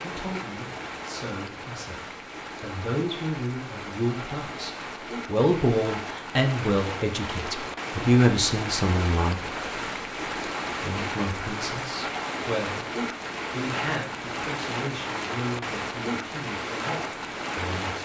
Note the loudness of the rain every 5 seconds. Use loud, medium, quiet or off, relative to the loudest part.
medium, loud, loud, loud.